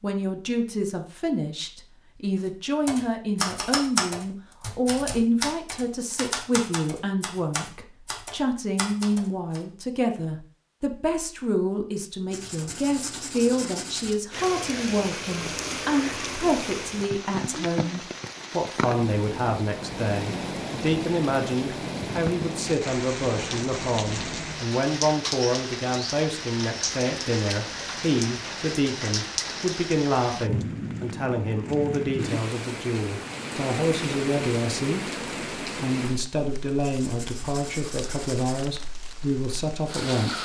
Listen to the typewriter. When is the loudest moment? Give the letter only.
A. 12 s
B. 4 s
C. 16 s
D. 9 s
B.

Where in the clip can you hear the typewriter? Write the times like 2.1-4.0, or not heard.
2.9-9.6.